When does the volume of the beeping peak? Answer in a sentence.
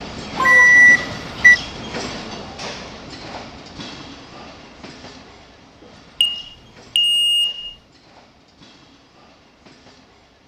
The loudest moment of the beeping is at 1 second.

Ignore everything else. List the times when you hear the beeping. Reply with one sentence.
You can hear the beeping from 0.3 to 1.6 s and from 6.2 to 7.8 s.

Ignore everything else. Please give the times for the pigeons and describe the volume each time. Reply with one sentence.
The pigeons can't be heard in this clip.